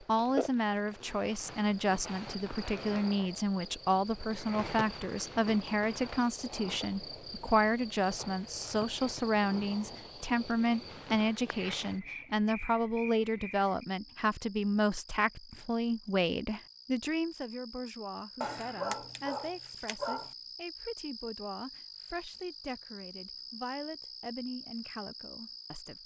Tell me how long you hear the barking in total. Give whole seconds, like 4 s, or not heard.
2 s.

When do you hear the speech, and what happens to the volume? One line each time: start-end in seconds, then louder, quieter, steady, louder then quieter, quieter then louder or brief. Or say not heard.
0.0-26.0 quieter.